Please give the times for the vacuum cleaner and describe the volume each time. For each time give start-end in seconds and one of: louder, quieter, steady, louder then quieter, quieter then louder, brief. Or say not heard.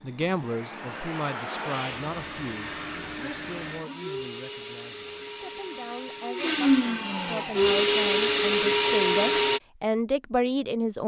0.0-9.6 louder.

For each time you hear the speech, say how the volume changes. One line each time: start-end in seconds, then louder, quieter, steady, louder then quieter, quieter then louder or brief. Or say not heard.
0.0-11.0 quieter then louder.